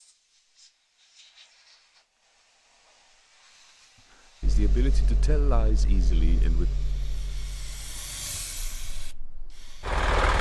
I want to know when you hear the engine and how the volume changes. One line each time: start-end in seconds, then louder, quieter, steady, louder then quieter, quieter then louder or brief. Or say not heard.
4.4-10.3 quieter then louder.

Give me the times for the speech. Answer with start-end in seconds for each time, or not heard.
4.0-6.7.